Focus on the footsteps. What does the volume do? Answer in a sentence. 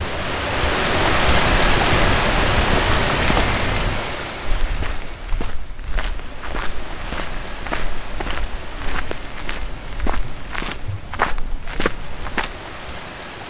The volume of the footsteps goes down, then up.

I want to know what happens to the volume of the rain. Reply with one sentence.
The volume of the rain goes down.